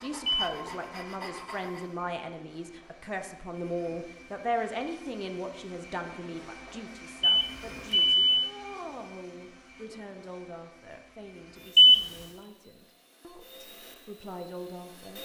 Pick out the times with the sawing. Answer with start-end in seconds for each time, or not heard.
0.0-1.9.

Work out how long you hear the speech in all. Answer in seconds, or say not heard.
15 s.